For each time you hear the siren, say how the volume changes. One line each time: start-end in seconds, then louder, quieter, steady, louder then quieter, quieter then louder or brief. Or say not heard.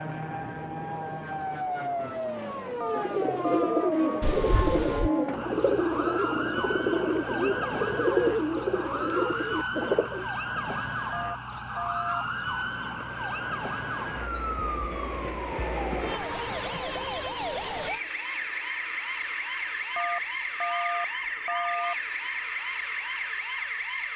0.0-24.1 steady.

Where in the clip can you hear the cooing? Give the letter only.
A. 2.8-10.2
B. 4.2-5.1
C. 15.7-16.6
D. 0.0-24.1
A.